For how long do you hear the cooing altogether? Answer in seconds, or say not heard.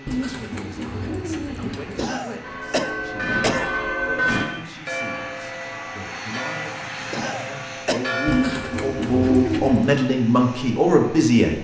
4 s.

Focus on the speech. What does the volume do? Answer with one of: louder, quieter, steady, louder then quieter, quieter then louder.
louder.